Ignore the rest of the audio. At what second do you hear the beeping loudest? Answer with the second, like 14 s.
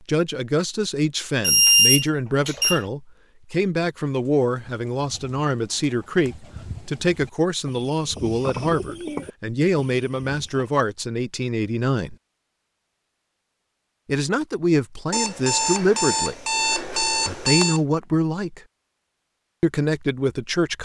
2 s.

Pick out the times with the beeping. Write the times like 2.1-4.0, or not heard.
1.4-2.8, 15.1-17.8.